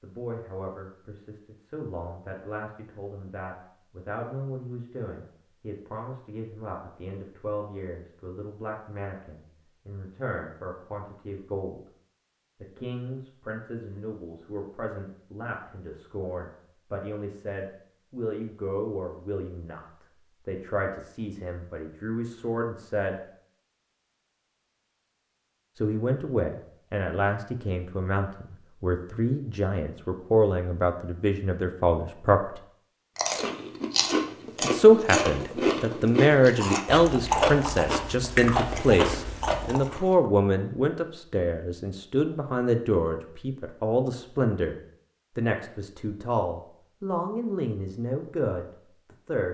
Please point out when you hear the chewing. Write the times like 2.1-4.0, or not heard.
33.1-40.1.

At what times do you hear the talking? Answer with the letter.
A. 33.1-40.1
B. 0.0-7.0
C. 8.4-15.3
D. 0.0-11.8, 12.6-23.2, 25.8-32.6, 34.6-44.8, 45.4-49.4
D.